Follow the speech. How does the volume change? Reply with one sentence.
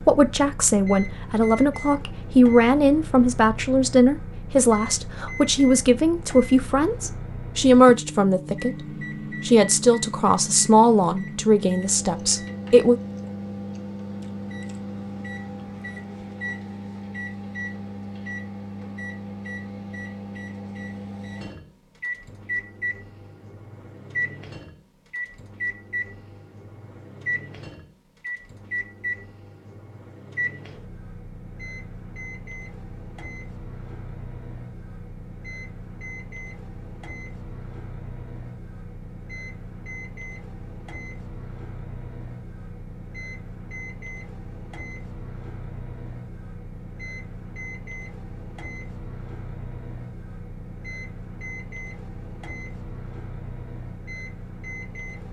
The volume of the speech stays about the same.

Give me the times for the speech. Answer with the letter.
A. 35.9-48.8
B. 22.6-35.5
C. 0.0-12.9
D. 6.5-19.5
C.